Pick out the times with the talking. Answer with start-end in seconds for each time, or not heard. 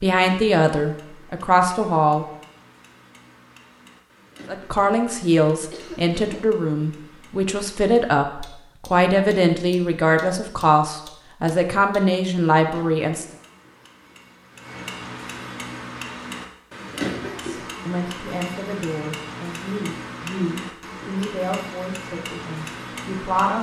0.0-2.2, 4.5-13.2, 17.4-23.5.